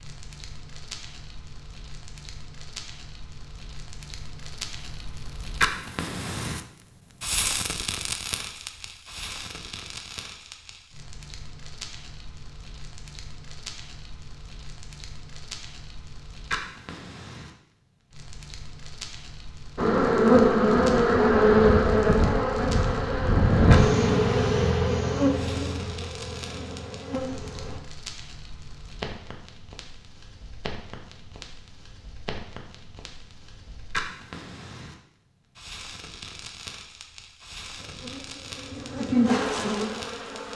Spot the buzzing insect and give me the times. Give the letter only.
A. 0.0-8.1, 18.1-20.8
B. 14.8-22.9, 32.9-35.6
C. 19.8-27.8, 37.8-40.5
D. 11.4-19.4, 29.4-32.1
C.